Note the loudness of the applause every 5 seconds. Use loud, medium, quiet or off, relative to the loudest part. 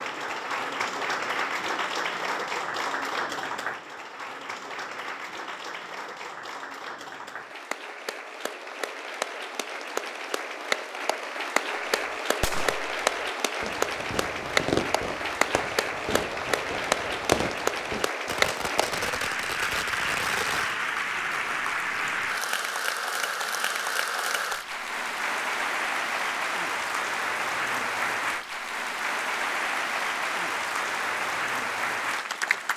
loud, medium, loud, loud, loud, loud, loud.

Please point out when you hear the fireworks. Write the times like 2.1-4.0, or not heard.
11.9-20.8.